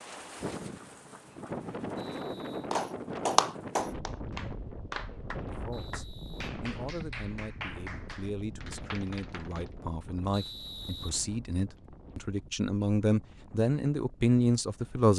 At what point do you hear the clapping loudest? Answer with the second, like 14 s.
3 s.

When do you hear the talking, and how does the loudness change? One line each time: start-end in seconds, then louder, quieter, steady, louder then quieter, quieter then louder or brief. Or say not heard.
5.4-15.1 louder.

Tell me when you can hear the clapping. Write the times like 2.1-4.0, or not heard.
2.7-9.7.